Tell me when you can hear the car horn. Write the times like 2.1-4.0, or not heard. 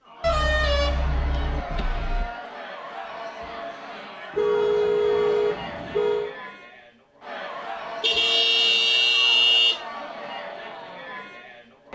0.2-2.2, 4.3-6.3, 8.0-9.8.